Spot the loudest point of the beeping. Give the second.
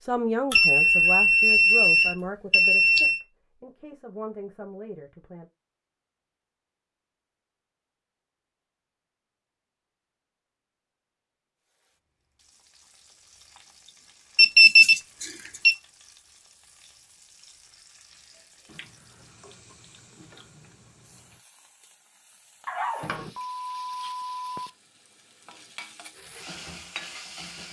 15 s.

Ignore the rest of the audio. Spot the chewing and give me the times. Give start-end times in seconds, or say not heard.
18.6-21.4.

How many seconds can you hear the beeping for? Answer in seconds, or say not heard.
6 s.